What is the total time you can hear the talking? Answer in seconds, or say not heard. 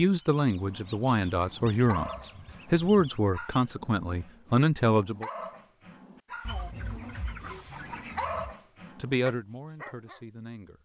7 s.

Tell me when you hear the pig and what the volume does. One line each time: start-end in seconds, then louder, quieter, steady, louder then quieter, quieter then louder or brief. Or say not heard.
not heard.